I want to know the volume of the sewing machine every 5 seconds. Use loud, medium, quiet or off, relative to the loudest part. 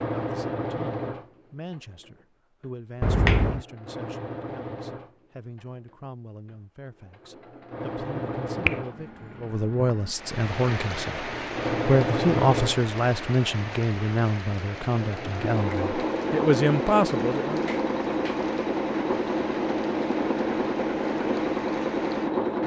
medium, medium, loud, loud, loud.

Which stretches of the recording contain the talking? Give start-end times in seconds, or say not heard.
0.2-17.7.